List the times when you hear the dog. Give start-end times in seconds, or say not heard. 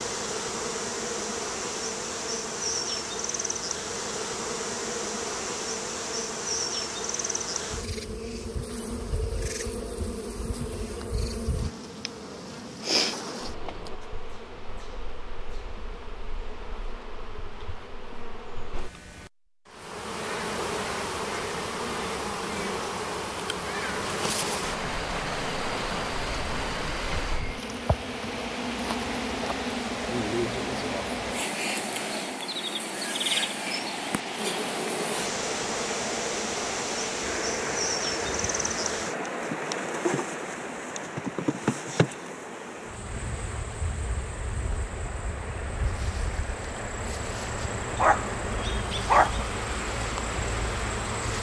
48.0-49.5.